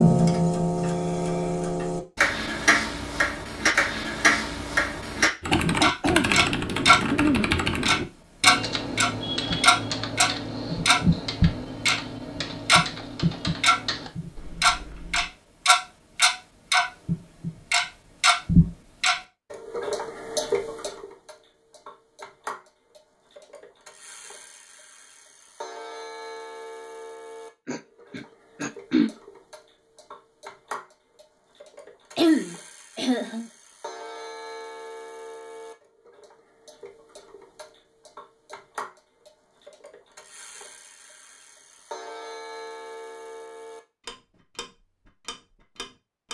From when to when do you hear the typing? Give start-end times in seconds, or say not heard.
5.4-15.3.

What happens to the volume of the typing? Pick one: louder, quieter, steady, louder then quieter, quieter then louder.
quieter.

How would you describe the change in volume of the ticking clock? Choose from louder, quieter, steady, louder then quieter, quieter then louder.
quieter.